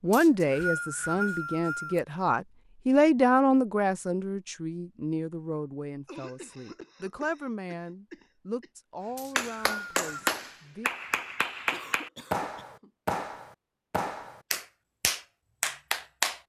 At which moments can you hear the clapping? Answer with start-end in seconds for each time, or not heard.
9.3-16.4.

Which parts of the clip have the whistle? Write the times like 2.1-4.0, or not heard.
0.1-2.0, 9.2-10.3.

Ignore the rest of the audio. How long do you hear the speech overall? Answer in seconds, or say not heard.
11 s.